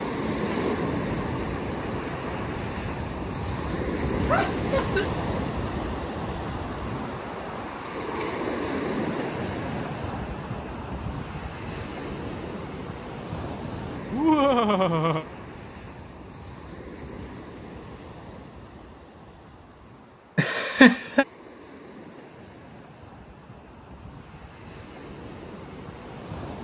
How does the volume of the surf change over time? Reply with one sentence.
The loudness of the surf goes down.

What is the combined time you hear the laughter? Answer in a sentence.
You can hear the laughter for 3 seconds altogether.